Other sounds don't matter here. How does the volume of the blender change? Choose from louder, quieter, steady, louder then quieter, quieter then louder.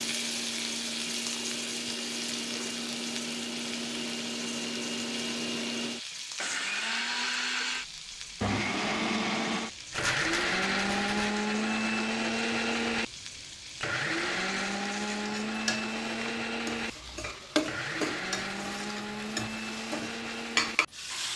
louder then quieter.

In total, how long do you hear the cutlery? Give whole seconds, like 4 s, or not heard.
not heard.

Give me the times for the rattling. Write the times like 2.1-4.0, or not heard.
9.9-11.3.